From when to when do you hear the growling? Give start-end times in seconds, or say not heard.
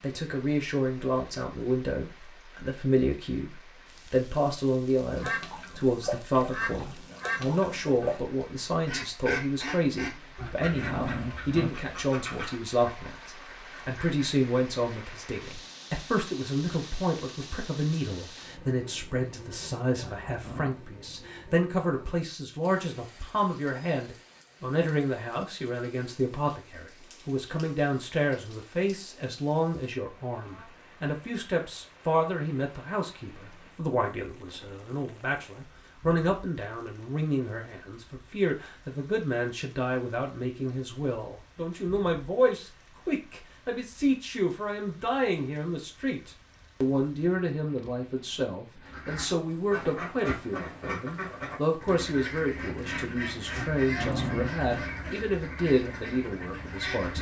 10.3-11.7, 20.0-20.9, 53.5-54.9.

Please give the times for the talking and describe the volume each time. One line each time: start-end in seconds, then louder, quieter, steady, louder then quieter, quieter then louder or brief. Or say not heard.
0.0-57.1 steady.